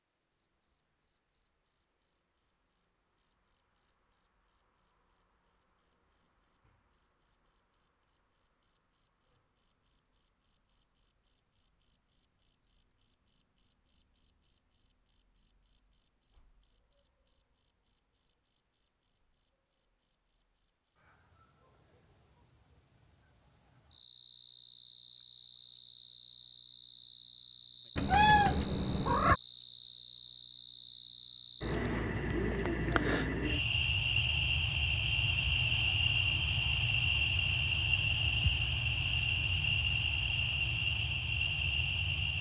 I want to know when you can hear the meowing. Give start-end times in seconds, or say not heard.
27.9-29.4.